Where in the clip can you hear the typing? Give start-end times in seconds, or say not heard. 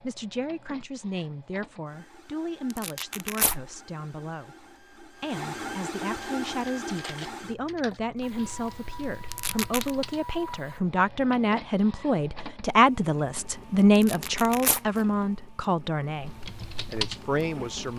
6.8-10.3, 16.1-17.9.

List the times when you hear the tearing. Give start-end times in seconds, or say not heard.
2.7-3.5, 9.3-9.9, 13.9-15.1.